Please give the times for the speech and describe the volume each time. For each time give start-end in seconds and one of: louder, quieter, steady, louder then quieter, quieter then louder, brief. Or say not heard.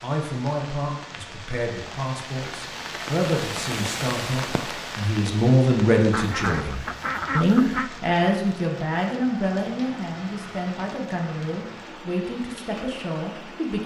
0.0-13.8 louder then quieter.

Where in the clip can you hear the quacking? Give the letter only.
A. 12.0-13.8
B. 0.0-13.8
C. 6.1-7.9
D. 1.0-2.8
C.